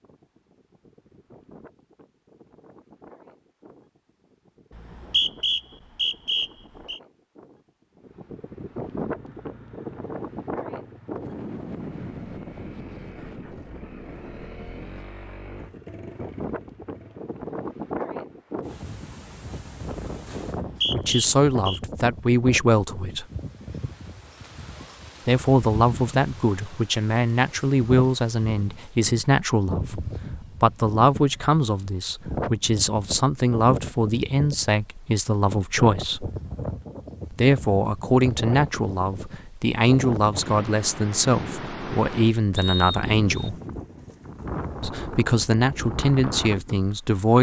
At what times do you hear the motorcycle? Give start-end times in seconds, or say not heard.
9.0-17.4.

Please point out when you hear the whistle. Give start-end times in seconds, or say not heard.
4.8-7.0, 20.4-21.8, 42.5-43.5.